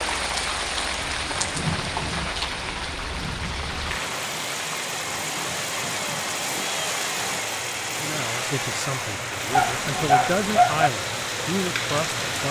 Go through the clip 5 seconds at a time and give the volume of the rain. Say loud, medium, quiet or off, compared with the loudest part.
loud, medium, loud.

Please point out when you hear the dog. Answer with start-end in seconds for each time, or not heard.
9.5-10.9.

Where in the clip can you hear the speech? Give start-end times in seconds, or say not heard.
7.9-12.4.